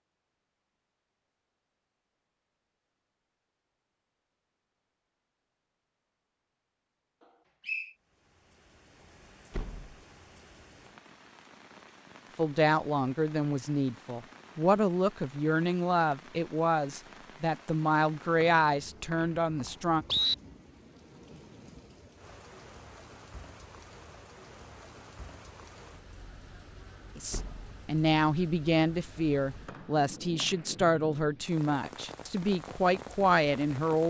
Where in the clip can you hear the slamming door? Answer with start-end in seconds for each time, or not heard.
9.5-10.0, 27.3-27.8.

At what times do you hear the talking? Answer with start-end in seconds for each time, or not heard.
12.3-20.1, 27.1-34.0.